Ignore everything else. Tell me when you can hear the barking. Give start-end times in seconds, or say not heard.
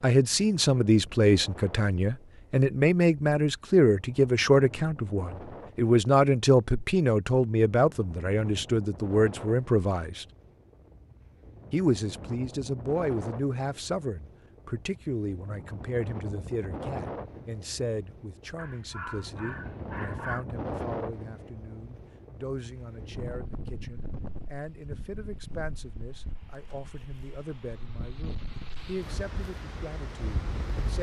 18.6-20.4.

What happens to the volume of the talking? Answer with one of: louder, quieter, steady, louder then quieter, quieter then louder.
quieter.